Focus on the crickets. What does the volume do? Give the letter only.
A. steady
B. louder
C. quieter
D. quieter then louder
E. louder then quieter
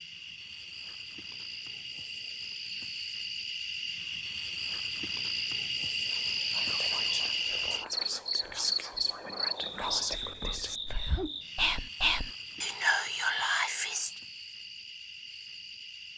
E.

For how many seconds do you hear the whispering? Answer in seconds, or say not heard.
8 s.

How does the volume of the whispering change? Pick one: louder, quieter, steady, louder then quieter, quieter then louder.
louder.